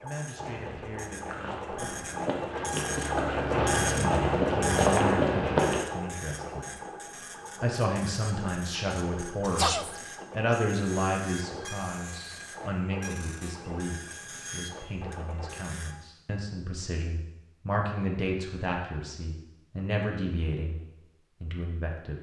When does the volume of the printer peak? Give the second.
4 s.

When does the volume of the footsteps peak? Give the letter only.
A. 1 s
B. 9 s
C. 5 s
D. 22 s
C.